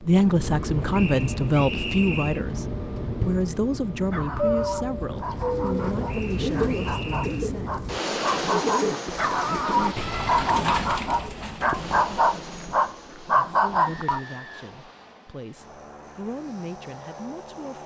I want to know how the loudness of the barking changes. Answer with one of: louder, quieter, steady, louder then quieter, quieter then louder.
louder.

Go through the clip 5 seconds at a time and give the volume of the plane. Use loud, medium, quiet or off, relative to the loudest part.
loud, loud, medium, quiet.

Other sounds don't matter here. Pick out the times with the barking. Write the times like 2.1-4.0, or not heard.
4.0-14.2.